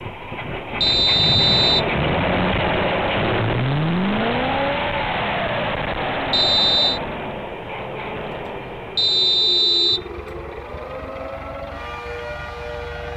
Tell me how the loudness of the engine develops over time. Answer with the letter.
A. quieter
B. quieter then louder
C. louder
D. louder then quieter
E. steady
A.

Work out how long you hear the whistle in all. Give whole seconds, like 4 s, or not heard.
3 s.